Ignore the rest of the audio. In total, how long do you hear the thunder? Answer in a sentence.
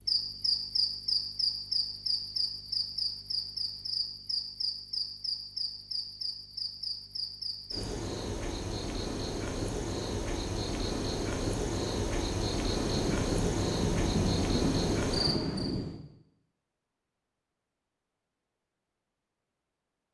You can hear the thunder for 3 seconds altogether.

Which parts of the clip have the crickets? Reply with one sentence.
You can hear the crickets from 0.0 to 15.8 s.